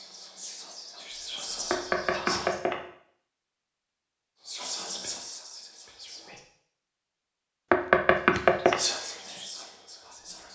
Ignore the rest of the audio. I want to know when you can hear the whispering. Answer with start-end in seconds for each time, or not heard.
0.0-2.6, 4.5-6.4, 8.2-10.5.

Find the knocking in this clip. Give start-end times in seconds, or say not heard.
1.7-2.8, 7.7-8.8.